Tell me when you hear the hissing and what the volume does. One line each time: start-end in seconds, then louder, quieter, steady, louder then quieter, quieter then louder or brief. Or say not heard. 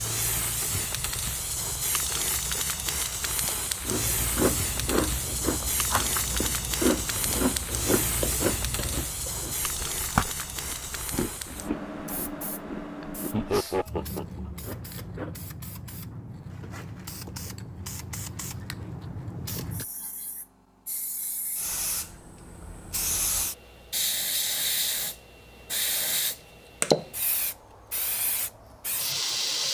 0.0-29.6 quieter then louder.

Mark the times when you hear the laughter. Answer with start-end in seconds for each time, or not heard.
13.3-14.4.